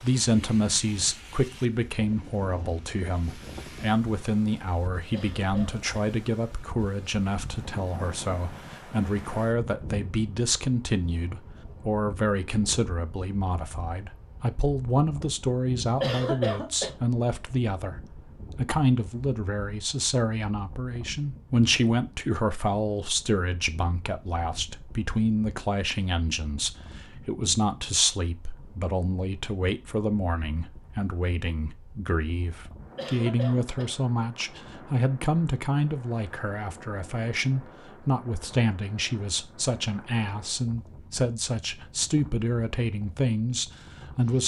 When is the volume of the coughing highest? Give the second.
16 s.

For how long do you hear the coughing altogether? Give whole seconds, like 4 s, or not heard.
3 s.